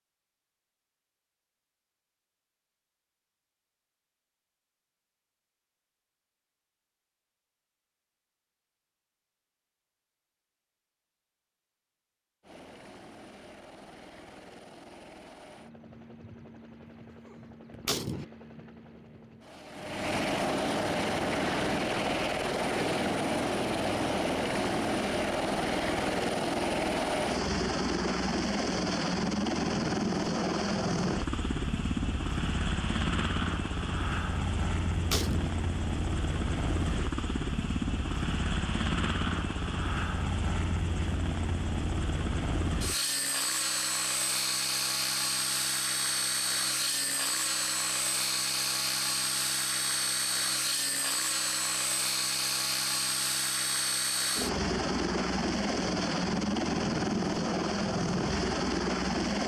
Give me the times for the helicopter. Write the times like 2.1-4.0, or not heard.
12.4-59.4.